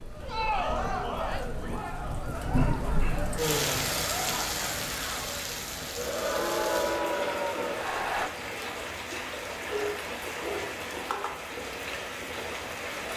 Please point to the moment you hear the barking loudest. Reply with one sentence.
The loudest moment of the barking is at 10 seconds.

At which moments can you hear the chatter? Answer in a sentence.
The chatter can be heard from 0.1 to 8.3 s.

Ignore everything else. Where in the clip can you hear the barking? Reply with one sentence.
You can hear the barking from 2.4 to 3.3 s and from 9.7 to 11.2 s.